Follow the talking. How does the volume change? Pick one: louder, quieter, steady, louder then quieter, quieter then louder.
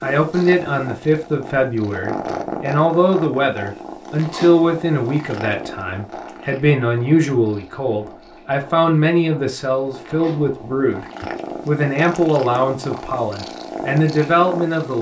steady.